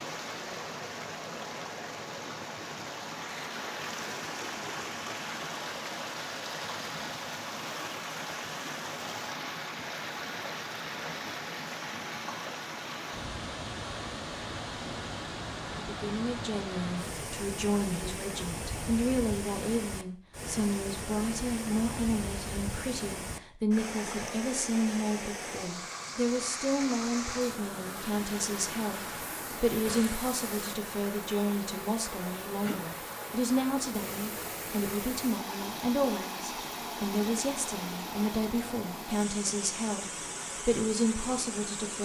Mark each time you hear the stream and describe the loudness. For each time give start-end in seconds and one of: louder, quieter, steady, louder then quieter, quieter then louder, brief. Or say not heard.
0.0-42.0 steady.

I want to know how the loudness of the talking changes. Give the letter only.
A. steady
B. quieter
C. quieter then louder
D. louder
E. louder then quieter
A.